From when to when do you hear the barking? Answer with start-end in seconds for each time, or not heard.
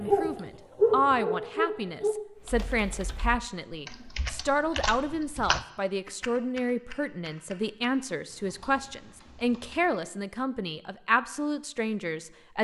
0.0-2.1.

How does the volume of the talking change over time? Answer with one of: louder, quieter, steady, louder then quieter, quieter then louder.
steady.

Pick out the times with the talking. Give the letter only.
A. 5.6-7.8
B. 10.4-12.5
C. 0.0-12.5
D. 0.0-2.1
C.